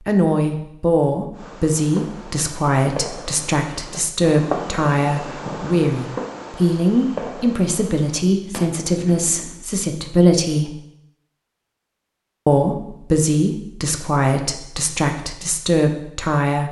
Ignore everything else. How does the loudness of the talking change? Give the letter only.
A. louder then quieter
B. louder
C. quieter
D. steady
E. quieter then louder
D.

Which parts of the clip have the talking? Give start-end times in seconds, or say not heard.
0.1-10.8, 12.4-16.6.